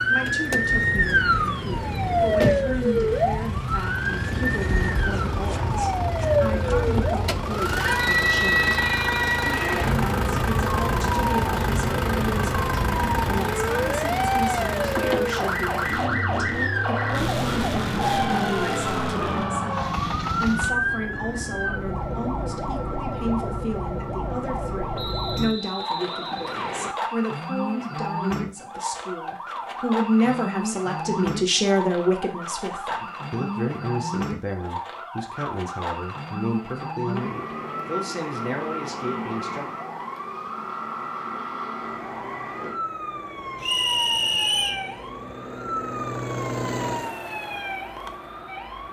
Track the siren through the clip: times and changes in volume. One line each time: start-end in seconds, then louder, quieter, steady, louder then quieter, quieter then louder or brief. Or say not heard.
0.0-48.8 quieter.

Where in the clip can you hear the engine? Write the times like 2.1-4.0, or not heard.
0.0-20.8, 41.8-48.8.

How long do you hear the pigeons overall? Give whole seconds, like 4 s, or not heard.
not heard.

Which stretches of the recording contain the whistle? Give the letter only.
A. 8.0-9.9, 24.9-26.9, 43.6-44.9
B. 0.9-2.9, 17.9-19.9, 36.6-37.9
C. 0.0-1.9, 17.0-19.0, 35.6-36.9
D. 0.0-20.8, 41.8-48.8
A.